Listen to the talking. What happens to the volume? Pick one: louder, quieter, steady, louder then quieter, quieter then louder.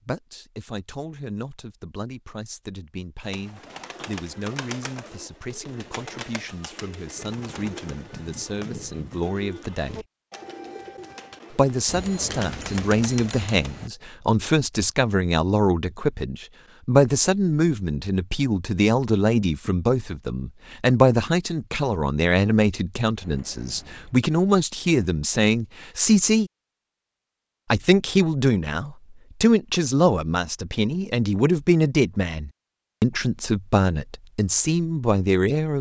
louder.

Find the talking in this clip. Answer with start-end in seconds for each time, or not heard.
0.1-10.1, 11.5-26.5, 27.7-35.7.